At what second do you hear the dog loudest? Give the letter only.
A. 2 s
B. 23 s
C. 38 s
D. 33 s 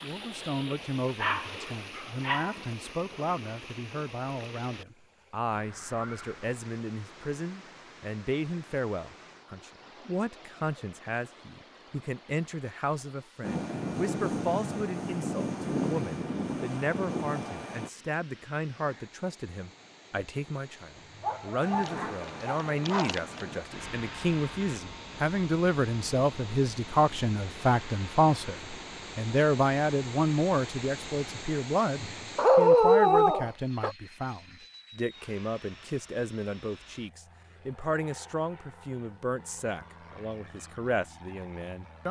D.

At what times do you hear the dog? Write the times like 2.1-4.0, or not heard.
1.2-2.5, 21.2-23.4, 32.4-34.0.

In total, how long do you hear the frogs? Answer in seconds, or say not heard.
not heard.